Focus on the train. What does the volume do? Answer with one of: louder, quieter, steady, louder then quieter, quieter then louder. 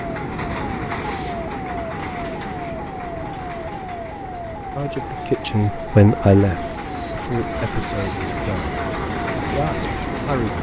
quieter then louder.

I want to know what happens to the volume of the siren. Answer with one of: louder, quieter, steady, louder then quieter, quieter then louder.
steady.